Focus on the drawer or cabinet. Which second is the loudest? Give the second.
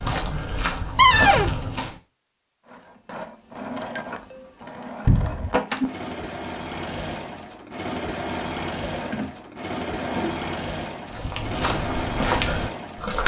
1 s.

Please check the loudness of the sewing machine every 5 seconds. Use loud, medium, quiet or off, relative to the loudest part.
medium, loud, loud.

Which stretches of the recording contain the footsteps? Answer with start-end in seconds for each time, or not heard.
0.0-1.9, 11.1-13.2.